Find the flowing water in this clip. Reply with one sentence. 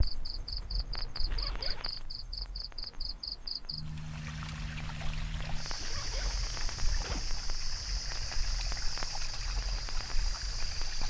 You can hear the flowing water from 3.8 to 11.0 s.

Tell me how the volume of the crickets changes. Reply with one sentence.
The volume of the crickets stays about the same.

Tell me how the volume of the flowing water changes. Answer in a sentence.
The volume of the flowing water stays about the same.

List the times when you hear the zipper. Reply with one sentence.
You can hear the zipper from 1.2 to 2.0 s and from 5.8 to 7.3 s.